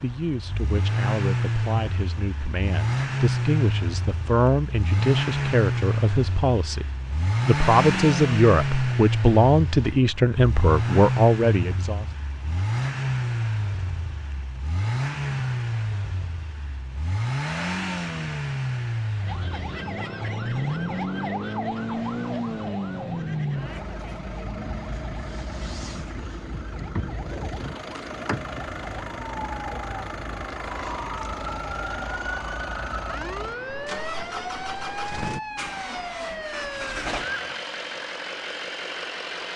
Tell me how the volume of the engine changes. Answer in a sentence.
The loudness of the engine goes down.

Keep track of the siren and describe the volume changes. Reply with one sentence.
The volume of the siren goes down, then up.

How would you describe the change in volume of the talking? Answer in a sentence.
The loudness of the talking goes up.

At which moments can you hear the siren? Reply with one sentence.
You can hear the siren from 19.2 to 37.6 s.